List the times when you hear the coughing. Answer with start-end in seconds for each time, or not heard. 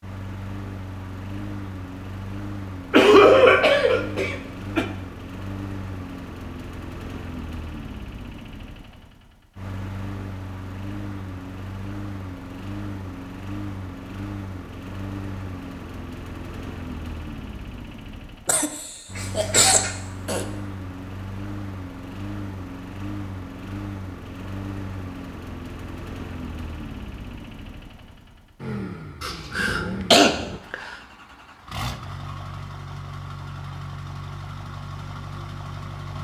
2.9-4.8, 18.4-20.4, 29.2-30.9.